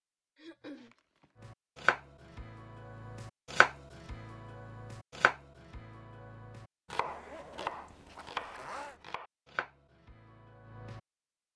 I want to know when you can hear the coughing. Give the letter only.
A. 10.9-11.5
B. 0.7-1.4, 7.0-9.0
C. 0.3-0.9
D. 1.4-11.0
C.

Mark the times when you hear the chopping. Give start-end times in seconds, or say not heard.
1.4-11.0.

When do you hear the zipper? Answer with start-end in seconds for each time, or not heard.
0.7-1.4, 7.0-9.0.